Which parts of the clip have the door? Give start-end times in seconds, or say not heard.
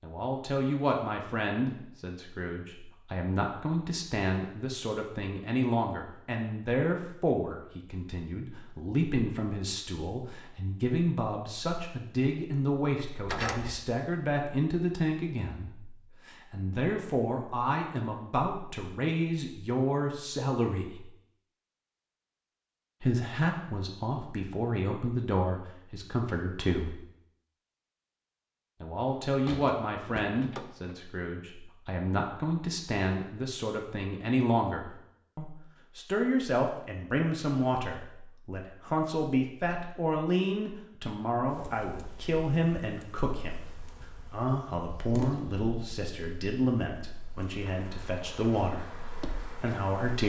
13.2-13.8, 29.2-31.0.